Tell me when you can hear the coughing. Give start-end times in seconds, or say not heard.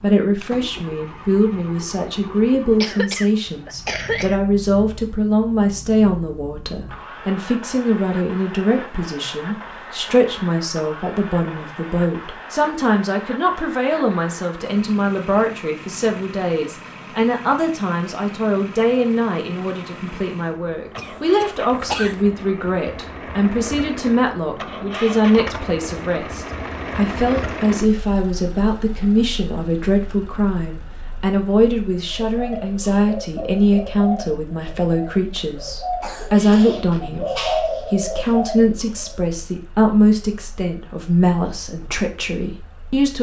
2.8-4.4, 20.9-22.2, 36.0-36.8.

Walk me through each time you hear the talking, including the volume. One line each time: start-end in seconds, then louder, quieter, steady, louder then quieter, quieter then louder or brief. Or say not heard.
0.0-43.1 steady.